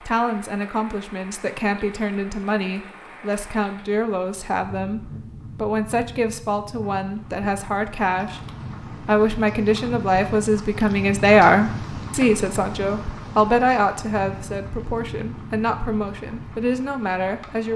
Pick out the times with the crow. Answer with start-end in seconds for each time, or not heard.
not heard.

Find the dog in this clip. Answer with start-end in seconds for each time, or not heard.
not heard.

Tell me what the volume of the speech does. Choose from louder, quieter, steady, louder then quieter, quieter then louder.
louder then quieter.